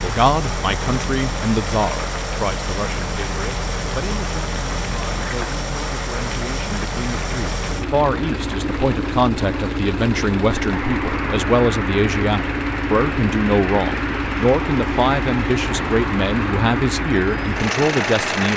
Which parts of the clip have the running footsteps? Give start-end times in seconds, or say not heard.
not heard.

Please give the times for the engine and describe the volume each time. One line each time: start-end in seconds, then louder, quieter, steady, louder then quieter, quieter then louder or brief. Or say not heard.
0.0-18.5 steady.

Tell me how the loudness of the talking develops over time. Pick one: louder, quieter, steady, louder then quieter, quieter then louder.
quieter then louder.